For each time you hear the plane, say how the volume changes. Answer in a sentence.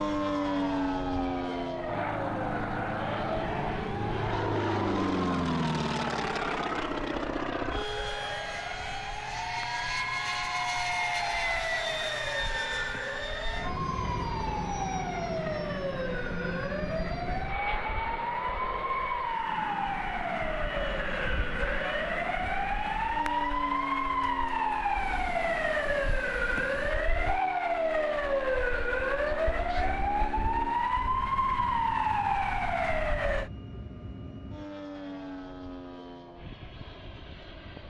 The plane can be heard from 0.0 to 37.8 s, getting quieter.